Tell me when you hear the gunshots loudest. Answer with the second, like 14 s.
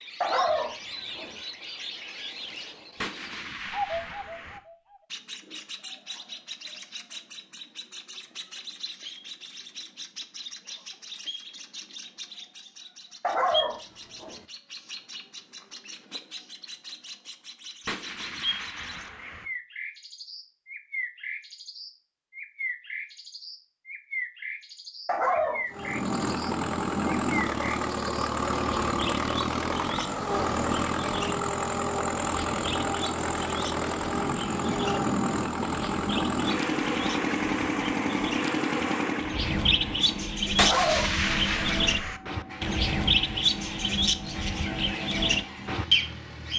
41 s.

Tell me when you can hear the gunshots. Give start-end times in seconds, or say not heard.
3.0-4.6, 17.9-19.4, 40.5-42.2.